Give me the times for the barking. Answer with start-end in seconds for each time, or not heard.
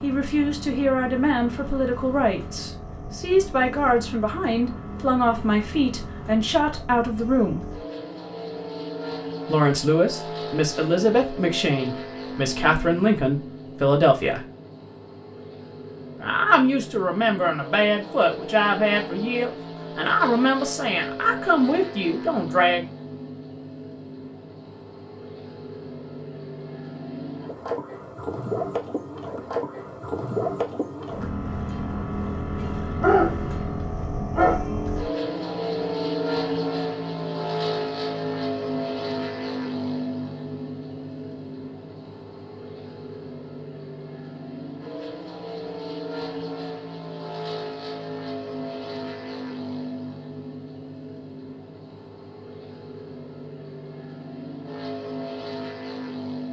33.0-34.6.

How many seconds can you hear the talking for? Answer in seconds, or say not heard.
19 s.